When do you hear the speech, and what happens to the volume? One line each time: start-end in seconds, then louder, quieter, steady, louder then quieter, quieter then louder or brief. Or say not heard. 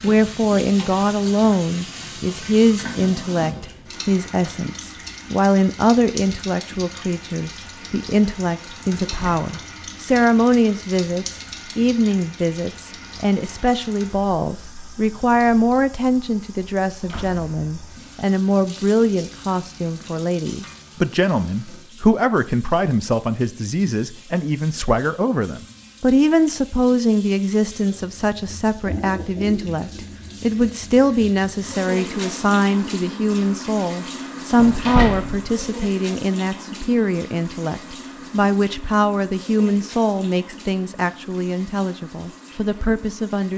0.0-43.5 steady.